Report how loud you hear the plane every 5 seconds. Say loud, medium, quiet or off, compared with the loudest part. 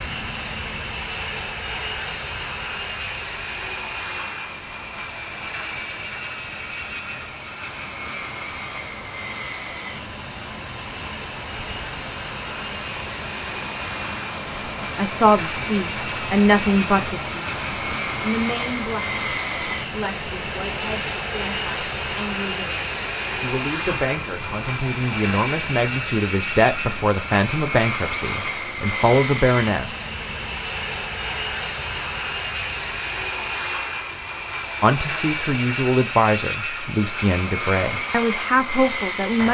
loud, medium, medium, loud, loud, loud, loud, loud.